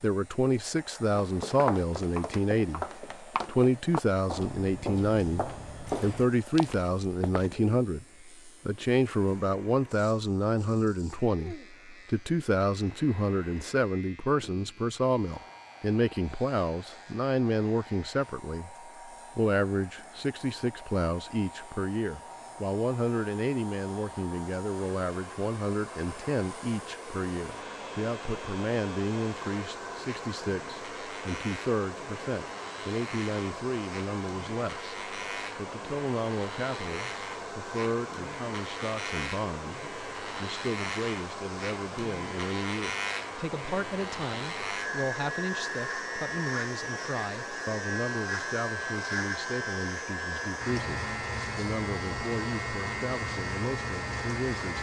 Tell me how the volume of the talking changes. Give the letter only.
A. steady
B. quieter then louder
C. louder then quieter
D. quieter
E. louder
D.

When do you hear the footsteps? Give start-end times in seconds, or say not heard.
1.2-7.6.